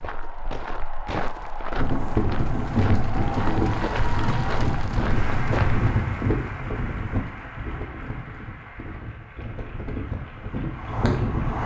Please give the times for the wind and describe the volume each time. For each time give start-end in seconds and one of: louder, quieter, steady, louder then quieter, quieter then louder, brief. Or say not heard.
1.8-11.6 quieter then louder.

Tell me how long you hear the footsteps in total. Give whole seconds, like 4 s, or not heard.
6 s.